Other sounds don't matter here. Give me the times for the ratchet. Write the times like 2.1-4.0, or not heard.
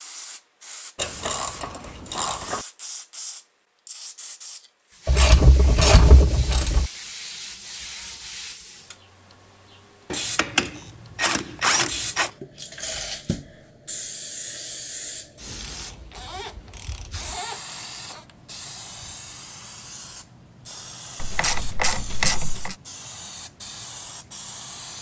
0.9-2.6, 5.0-6.9, 10.1-12.3, 15.6-17.8, 21.2-22.8.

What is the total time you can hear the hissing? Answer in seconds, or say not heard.
25 s.